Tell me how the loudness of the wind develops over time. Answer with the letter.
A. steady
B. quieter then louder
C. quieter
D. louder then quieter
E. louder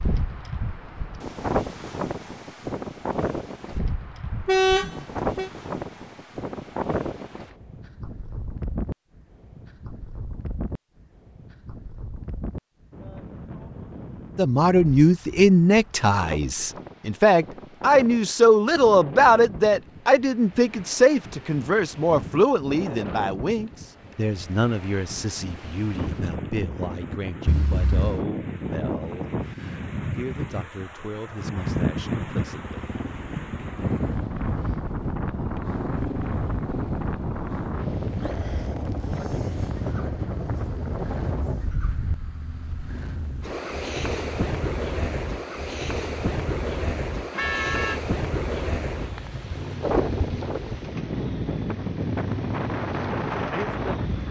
B.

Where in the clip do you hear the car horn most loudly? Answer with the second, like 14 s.
5 s.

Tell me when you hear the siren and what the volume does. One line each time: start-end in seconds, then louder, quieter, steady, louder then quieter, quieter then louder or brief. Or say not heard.
not heard.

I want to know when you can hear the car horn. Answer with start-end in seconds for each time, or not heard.
4.5-5.5, 27.4-28.2, 47.3-48.0.